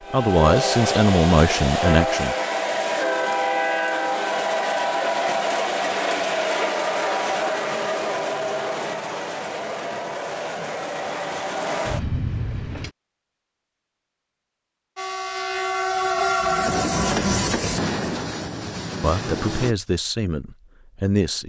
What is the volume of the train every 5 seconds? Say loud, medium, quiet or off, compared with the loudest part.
loud, loud, medium, loud, off.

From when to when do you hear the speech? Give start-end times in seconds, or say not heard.
0.1-2.4, 19.0-21.4.